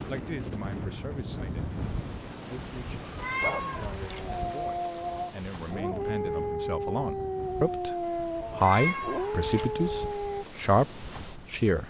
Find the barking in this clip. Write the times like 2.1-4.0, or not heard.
3.4-10.4.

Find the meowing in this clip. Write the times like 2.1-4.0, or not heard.
3.1-4.2, 8.6-9.7.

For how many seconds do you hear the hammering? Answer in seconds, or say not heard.
not heard.